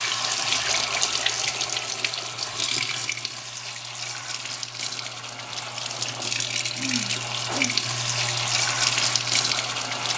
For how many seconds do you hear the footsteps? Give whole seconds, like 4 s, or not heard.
not heard.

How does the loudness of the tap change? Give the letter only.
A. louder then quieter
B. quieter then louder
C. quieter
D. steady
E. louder
B.